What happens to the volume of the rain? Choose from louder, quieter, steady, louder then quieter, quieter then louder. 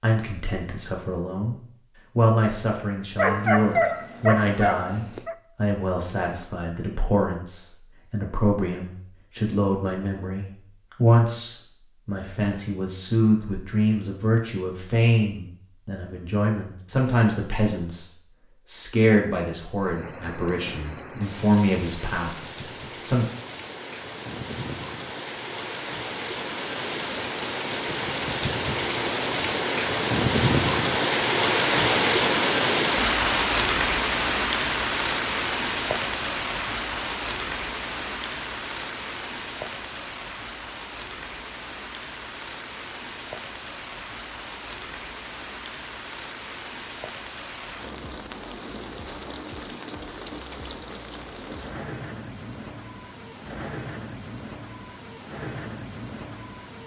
louder then quieter.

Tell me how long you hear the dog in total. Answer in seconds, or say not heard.
2 s.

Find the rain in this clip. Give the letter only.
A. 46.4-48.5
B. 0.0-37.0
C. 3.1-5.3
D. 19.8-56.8
D.